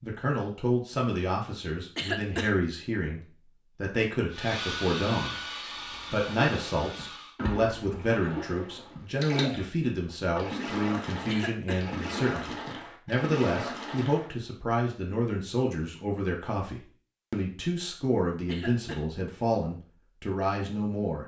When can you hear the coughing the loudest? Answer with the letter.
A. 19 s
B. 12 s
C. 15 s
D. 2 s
D.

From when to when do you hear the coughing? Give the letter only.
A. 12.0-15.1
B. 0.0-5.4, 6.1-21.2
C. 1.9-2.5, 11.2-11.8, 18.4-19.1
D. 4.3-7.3
C.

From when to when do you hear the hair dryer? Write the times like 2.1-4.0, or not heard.
4.3-7.3.